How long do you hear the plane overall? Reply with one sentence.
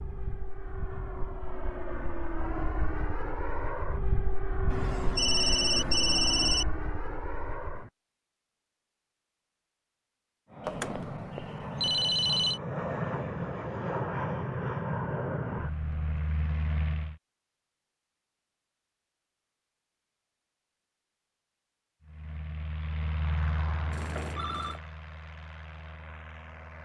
The plane can be heard for 19 seconds in total.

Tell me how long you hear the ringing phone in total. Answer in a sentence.
You can hear the ringing phone for 5 seconds altogether.